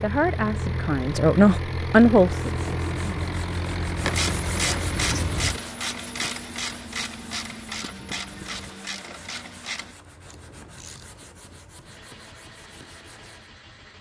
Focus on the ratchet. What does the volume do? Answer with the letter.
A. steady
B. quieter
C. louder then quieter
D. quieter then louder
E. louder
B.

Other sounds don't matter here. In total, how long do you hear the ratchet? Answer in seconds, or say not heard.
7 s.